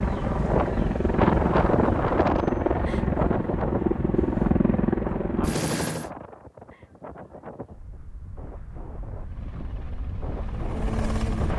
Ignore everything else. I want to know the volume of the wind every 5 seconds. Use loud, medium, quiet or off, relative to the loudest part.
loud, quiet, medium.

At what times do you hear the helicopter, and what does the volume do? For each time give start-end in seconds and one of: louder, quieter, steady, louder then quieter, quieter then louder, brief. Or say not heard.
0.0-6.1 steady
9.2-11.5 brief.